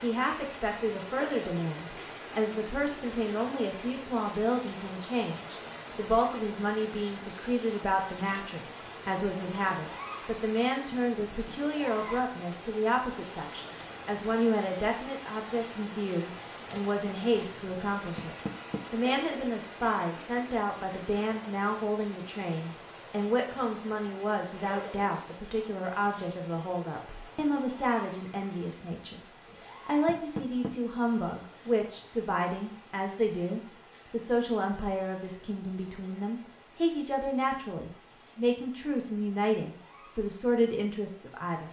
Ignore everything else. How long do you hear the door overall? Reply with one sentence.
You can hear the door for 2 seconds altogether.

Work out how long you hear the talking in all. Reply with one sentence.
The talking can be heard for 41 seconds in total.